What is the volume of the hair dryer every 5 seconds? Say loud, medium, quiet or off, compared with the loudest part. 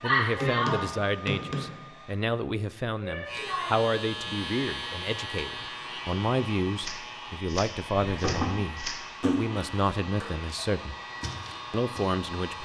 loud, medium, medium.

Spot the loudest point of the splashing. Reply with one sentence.
The volume of the splashing peaks at 9 seconds.